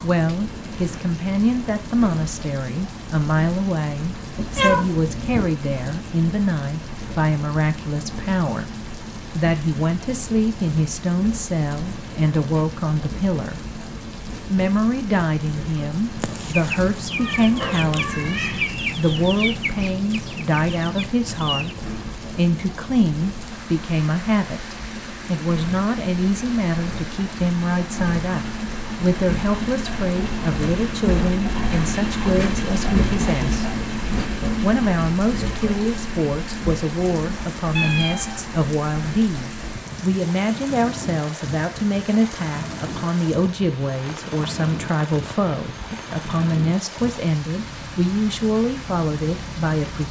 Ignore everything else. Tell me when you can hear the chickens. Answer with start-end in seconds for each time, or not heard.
16.1-21.9.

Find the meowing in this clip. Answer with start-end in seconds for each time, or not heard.
4.3-5.5, 17.1-18.6, 37.8-38.5.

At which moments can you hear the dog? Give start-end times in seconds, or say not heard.
not heard.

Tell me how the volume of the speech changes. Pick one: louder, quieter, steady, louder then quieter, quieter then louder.
steady.